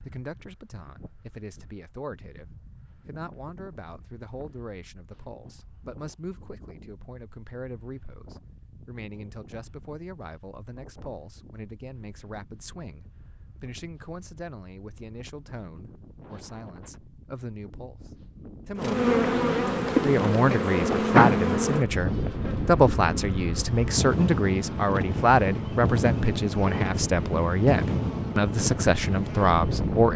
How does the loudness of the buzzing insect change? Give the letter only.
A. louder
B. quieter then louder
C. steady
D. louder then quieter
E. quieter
E.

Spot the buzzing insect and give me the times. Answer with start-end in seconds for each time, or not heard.
18.8-30.1.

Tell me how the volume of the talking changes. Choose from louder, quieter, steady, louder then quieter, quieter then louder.
louder.